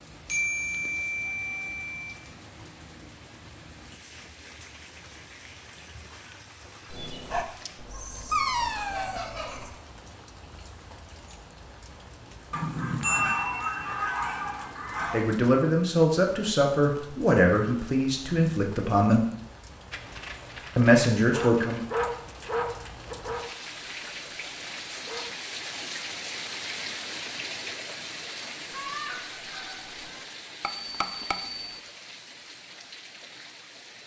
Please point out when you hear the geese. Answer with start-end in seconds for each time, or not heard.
7.9-9.7, 12.5-15.2, 28.7-30.2.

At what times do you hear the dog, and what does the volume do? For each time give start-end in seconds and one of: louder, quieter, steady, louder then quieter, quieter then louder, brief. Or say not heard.
6.9-9.7 brief
19.9-25.4 louder then quieter.